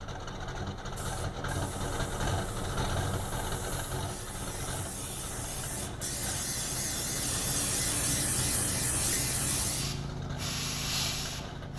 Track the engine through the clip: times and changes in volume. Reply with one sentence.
You can hear the engine from 0.0 to 11.7 s, getting quieter.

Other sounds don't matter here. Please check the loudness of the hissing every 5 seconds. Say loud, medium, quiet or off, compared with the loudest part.
quiet, loud, loud.